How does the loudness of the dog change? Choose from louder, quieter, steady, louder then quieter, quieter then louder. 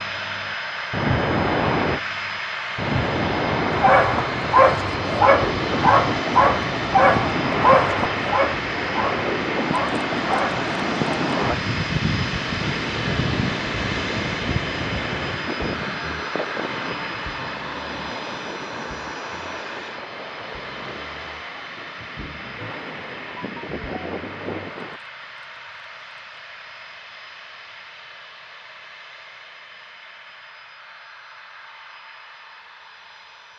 quieter.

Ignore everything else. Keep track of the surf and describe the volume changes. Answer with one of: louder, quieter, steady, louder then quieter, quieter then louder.
quieter.